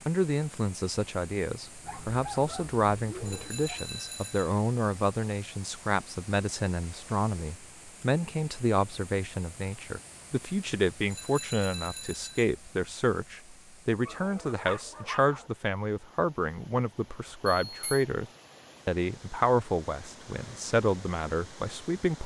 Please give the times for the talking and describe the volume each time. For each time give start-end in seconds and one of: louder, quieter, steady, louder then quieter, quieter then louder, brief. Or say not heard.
0.1-22.2 steady.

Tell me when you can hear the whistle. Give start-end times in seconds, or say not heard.
not heard.